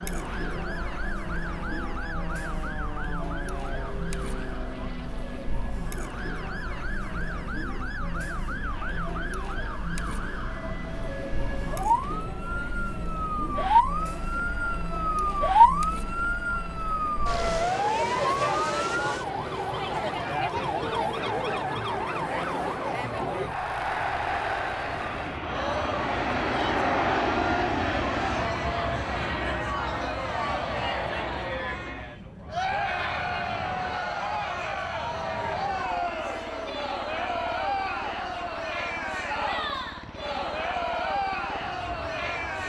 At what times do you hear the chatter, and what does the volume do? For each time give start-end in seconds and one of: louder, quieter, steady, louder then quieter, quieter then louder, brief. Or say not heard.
0.0-42.6 louder.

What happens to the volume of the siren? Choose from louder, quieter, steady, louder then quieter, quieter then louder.
louder then quieter.